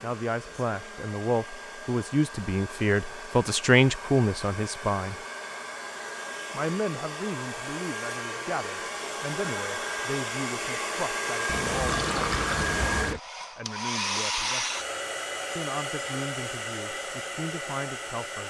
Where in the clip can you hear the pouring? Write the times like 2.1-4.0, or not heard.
11.4-13.2.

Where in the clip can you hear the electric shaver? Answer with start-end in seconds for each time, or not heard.
not heard.